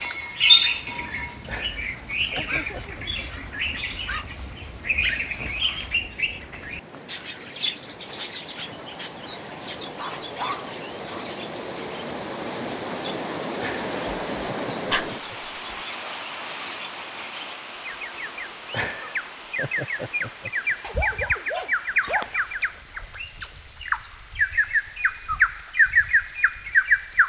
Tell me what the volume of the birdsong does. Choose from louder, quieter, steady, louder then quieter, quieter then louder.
quieter then louder.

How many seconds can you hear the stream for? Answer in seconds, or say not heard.
27 s.